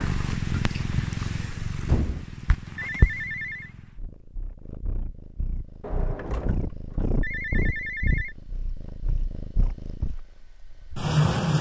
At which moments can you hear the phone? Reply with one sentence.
The phone can be heard from 2.8 to 3.7 s and from 7.2 to 8.3 s.